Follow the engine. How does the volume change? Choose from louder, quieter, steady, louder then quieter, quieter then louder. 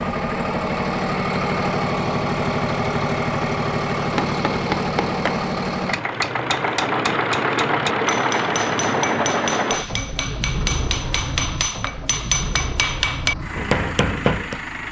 quieter.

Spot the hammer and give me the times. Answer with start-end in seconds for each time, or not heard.
4.0-14.6.